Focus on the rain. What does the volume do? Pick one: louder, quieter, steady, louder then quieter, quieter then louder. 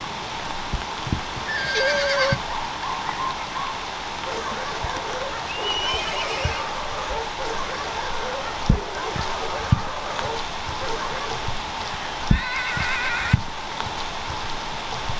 steady.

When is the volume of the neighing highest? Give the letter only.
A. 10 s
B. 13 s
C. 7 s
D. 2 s
D.